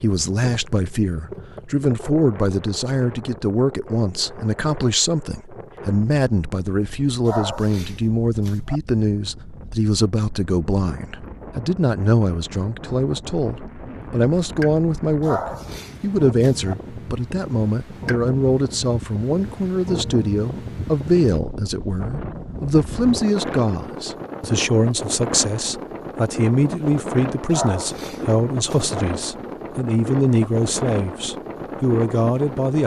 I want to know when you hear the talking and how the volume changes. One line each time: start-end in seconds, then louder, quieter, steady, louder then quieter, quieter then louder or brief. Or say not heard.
0.0-15.4 steady
16.0-32.8 steady.